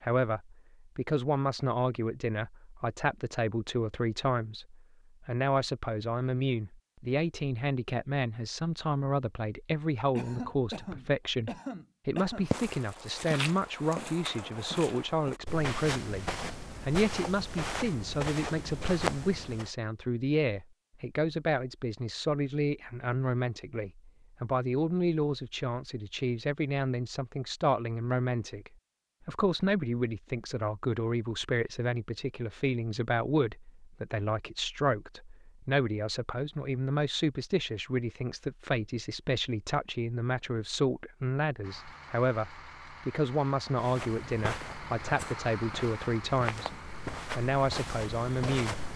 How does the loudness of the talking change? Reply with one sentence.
The volume of the talking stays about the same.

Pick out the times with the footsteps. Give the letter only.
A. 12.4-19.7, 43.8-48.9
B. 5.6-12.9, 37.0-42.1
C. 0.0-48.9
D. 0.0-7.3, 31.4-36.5
A.